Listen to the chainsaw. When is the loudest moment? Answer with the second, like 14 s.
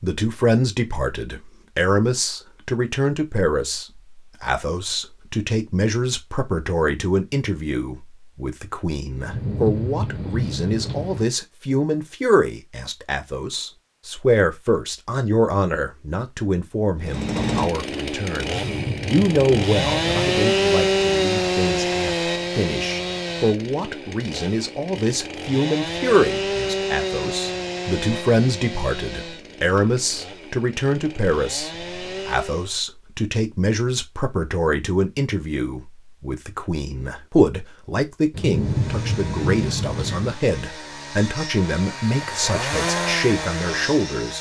21 s.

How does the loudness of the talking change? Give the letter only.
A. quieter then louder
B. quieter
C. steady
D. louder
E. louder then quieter
C.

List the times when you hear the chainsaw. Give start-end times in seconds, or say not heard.
17.0-32.8, 38.5-44.3.